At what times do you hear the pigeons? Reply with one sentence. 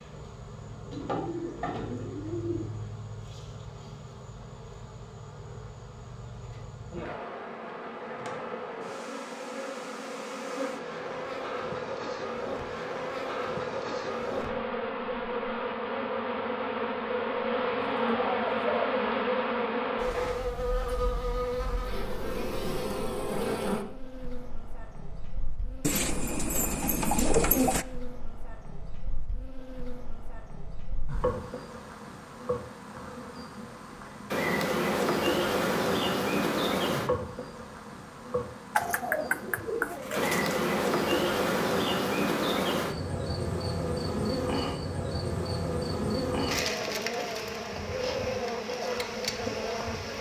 The pigeons can be heard from 1.1 to 2.7 s, from 17.8 to 18.9 s, from 25.8 to 27.9 s and from 38.8 to 40.5 s.